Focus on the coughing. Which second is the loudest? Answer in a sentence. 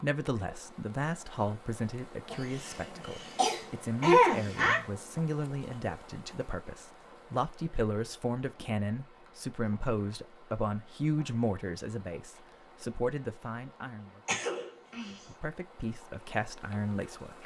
The volume of the coughing peaks at 4 seconds.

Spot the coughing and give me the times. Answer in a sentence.
The coughing can be heard from 2.3 to 4.8 s and from 14.2 to 15.2 s.